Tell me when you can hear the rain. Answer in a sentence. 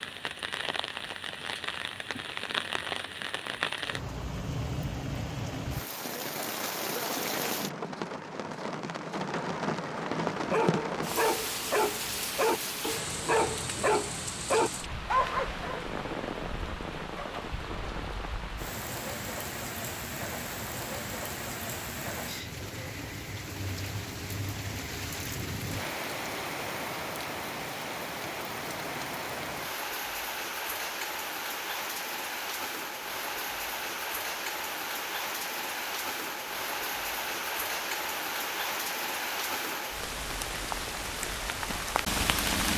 You can hear the rain from 0.0 to 42.7 s.